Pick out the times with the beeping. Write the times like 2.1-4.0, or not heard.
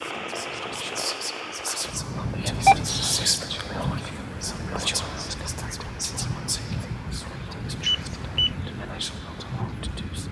2.6-3.2, 7.8-8.5.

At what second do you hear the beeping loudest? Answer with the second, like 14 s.
3 s.